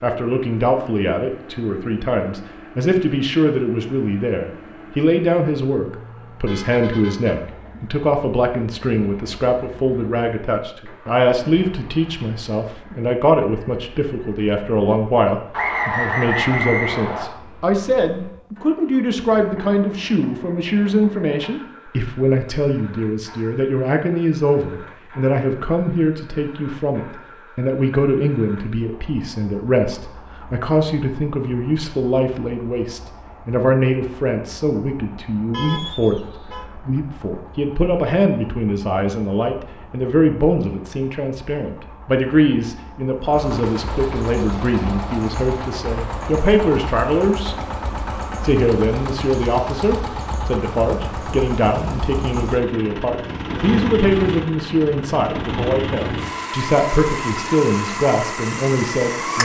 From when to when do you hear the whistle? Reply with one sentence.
You can hear the whistle from 15.5 to 17.2 s.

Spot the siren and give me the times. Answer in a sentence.
The siren can't be heard in this clip.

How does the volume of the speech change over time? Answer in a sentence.
The loudness of the speech stays about the same.